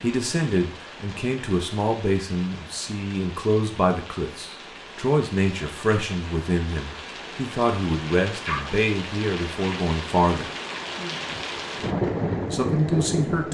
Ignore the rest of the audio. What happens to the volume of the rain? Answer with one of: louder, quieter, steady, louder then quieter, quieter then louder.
louder.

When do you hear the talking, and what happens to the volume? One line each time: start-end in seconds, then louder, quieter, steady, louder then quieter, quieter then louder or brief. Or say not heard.
0.0-10.5 steady
12.4-13.5 brief.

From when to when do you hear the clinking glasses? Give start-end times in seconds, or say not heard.
not heard.